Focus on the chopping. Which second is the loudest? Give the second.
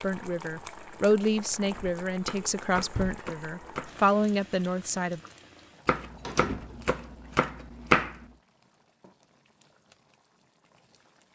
8 s.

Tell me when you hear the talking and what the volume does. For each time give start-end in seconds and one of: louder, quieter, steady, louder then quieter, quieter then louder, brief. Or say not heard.
0.0-5.2 quieter then louder.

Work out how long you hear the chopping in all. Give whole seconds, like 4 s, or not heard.
4 s.